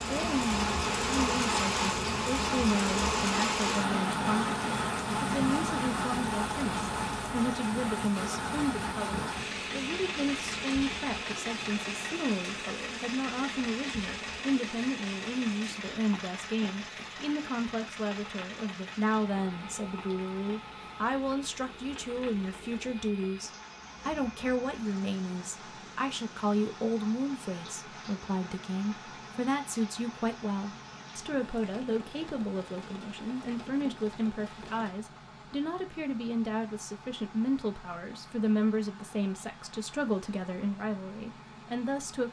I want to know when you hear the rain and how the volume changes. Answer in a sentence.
You can hear the rain from 0.0 to 35.0 s, getting quieter.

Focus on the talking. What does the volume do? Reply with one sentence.
The loudness of the talking stays about the same.